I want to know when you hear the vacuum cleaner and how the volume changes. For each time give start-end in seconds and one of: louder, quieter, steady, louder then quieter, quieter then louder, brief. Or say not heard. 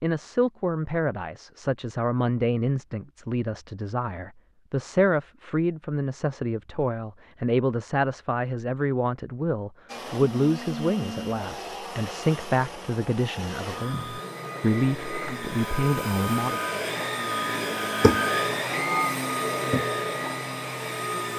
9.8-21.3 louder.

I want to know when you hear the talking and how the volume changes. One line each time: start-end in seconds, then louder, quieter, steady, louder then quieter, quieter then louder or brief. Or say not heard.
0.0-16.6 steady.